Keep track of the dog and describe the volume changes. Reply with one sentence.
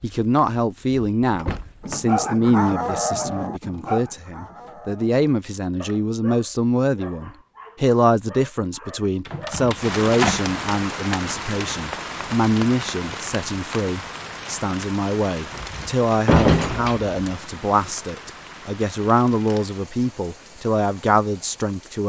The volume of the dog goes down.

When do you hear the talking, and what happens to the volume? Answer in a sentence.
The talking can be heard from 0.0 to 22.0 s, at a steady volume.